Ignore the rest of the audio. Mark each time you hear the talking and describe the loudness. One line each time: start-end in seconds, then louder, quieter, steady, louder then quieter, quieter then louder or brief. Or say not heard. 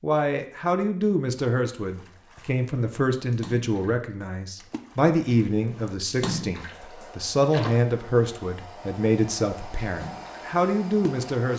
0.0-11.5 steady.